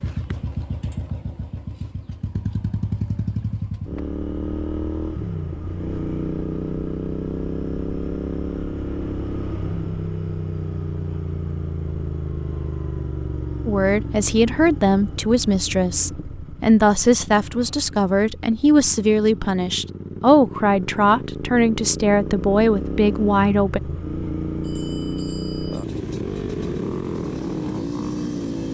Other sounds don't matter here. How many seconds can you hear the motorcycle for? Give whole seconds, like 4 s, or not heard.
29 s.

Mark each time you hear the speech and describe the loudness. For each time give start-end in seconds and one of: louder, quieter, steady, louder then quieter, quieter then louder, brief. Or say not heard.
13.7-23.8 steady.